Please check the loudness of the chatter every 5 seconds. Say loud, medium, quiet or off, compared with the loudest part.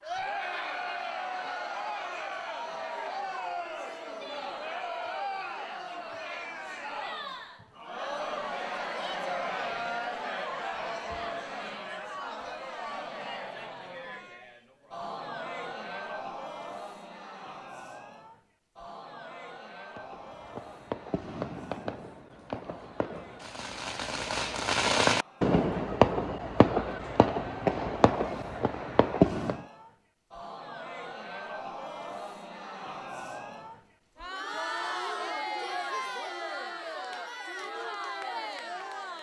loud, loud, loud, medium, quiet, quiet, loud, loud.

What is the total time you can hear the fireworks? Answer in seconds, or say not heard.
10 s.